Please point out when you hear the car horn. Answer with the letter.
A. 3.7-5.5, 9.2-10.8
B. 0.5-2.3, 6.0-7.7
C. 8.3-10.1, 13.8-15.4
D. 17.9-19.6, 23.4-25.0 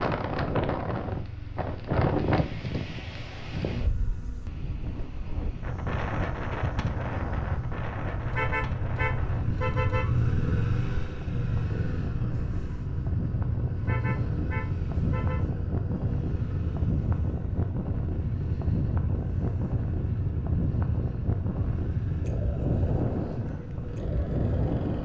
C.